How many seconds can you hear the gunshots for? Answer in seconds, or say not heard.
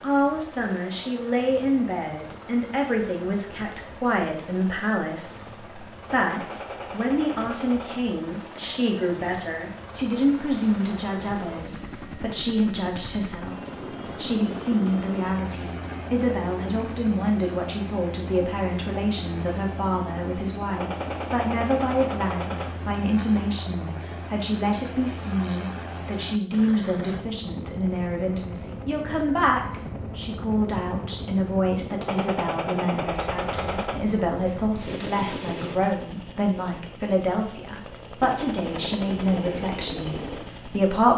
6 s.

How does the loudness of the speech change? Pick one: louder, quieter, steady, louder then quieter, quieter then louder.
steady.